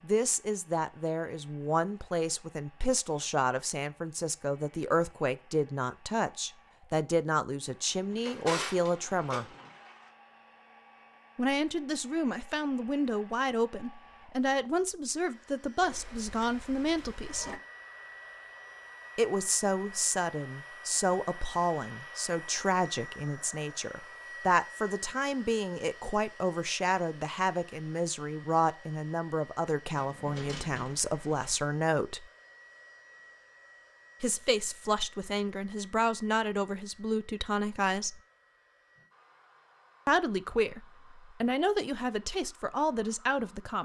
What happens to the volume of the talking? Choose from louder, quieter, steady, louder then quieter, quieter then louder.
steady.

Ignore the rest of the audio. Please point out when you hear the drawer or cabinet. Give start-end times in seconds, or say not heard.
7.9-9.7, 29.9-30.9.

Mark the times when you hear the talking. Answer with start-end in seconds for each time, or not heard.
0.0-9.4, 11.3-17.6, 19.1-32.2, 34.2-38.1, 40.0-43.7.